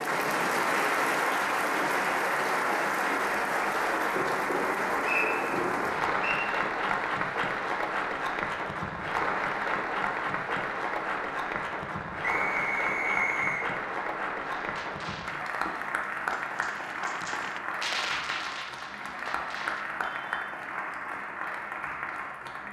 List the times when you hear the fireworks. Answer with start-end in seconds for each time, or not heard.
14.4-20.5.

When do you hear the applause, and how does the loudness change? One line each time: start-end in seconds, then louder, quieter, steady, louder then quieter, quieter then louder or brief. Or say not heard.
0.0-22.6 quieter.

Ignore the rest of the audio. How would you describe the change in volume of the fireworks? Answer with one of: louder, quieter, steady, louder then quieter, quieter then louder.
louder then quieter.